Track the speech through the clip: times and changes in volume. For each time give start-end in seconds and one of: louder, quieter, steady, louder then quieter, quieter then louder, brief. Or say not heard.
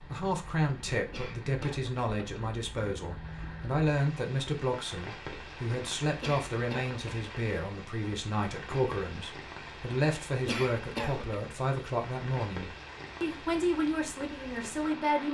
0.0-15.2 steady.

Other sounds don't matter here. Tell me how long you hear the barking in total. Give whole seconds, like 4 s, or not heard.
not heard.